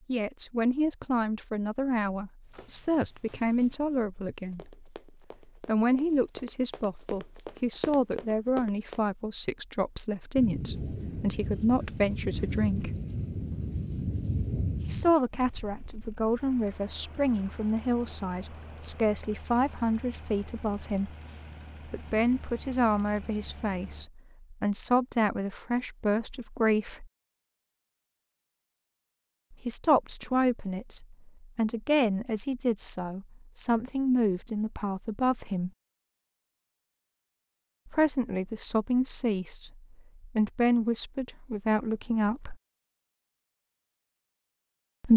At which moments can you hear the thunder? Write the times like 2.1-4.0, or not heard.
10.3-15.2.